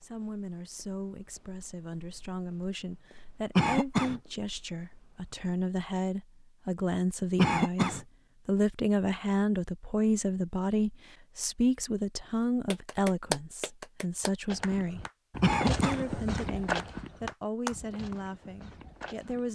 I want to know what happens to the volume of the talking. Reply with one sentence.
The loudness of the talking goes up, then down.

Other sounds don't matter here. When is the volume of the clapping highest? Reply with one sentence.
The volume of the clapping peaks at 13 seconds.